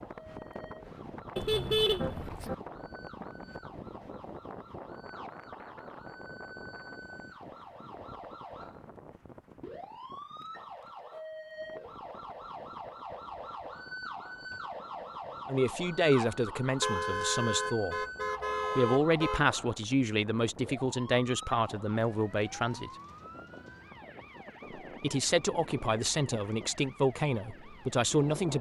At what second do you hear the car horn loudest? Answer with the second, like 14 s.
2 s.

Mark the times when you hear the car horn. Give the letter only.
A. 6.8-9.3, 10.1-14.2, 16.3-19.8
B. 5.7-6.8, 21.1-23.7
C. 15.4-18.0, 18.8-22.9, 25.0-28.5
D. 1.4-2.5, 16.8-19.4
D.